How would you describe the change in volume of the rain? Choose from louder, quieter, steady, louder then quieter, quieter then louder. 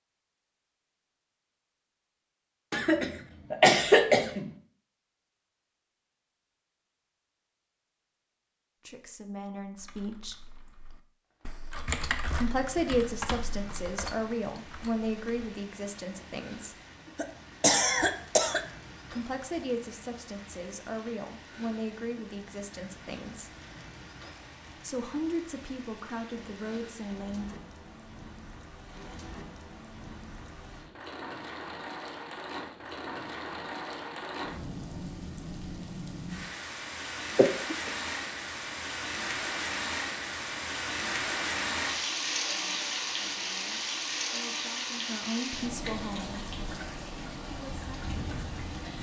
louder.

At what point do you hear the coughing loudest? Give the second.
4 s.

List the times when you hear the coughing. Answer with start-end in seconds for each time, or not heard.
2.7-4.5, 17.1-18.6, 37.4-37.9.